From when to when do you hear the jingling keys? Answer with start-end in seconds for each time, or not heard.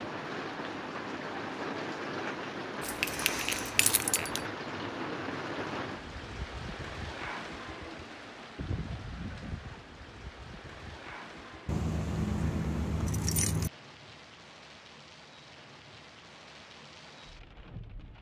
2.8-4.4, 11.7-13.7.